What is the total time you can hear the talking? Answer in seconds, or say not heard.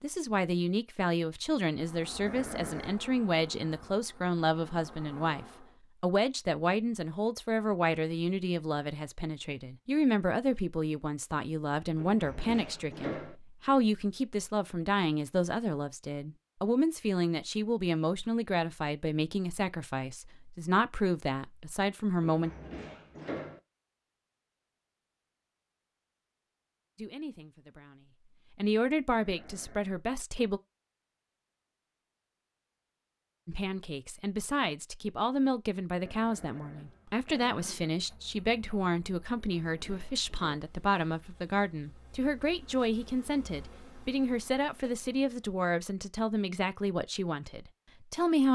41 s.